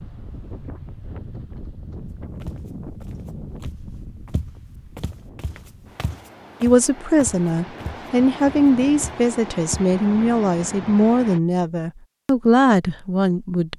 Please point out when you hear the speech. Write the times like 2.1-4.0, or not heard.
6.6-13.7.